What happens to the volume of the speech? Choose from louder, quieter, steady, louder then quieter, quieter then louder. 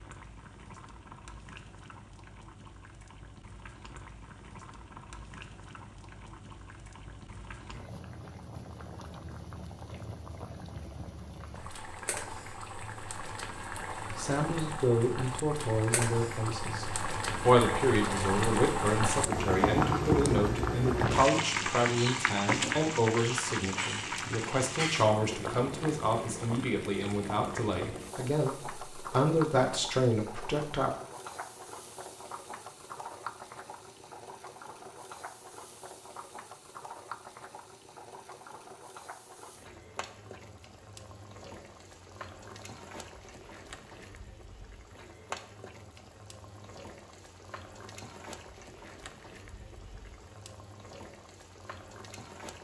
steady.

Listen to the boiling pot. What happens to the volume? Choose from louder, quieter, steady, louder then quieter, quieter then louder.
louder then quieter.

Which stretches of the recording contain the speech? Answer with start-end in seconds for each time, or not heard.
14.2-30.9.